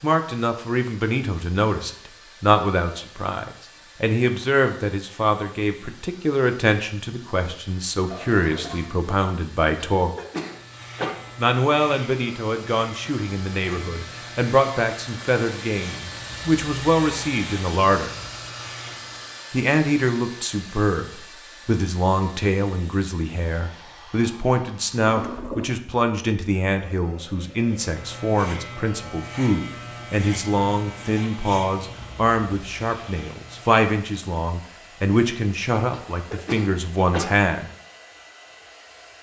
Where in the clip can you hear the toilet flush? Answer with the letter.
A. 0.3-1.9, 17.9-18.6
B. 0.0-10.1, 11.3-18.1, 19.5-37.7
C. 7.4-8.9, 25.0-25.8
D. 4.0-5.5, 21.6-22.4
C.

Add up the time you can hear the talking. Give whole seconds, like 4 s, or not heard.
35 s.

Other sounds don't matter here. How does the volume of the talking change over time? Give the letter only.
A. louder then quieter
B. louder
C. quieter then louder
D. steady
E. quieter
D.